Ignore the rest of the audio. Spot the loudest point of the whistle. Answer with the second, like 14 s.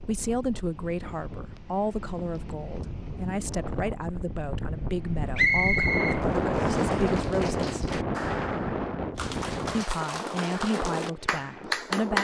6 s.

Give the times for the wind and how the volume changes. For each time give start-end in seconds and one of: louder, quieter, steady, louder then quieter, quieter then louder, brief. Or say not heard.
0.0-12.1 louder then quieter.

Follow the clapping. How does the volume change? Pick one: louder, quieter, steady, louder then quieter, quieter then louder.
louder.